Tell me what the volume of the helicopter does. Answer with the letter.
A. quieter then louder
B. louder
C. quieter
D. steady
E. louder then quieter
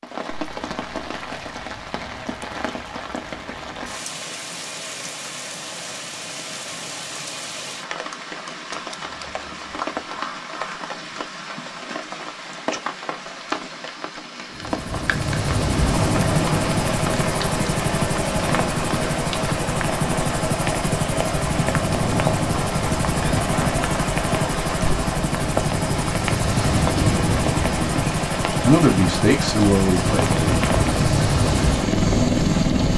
D.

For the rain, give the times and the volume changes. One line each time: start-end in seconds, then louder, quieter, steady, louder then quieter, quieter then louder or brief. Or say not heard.
0.0-32.9 steady.